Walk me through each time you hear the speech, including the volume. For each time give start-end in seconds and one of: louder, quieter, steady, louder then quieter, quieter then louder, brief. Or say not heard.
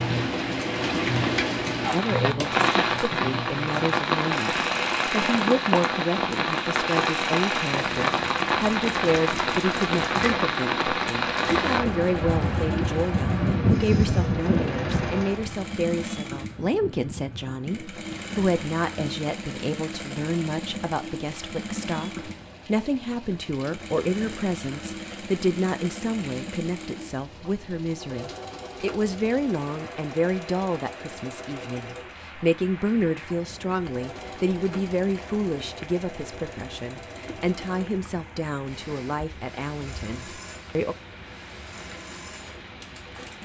1.9-41.0 steady.